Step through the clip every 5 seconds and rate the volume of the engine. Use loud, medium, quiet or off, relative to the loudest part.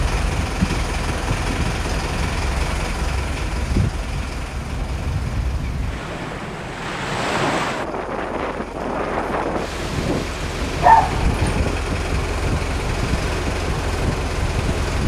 loud, medium, loud.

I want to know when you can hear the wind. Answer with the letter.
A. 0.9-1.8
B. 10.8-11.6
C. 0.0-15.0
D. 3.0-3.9
C.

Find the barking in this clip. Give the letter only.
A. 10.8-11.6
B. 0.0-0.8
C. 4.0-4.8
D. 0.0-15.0
A.